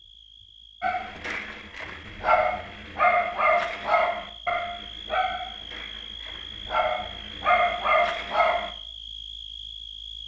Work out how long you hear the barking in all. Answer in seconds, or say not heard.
8 s.